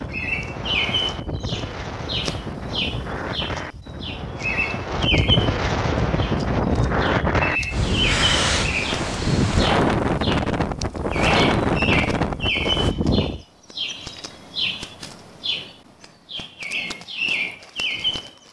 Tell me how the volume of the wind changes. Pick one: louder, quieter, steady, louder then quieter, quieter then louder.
louder.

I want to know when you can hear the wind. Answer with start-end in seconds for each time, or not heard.
0.0-13.4.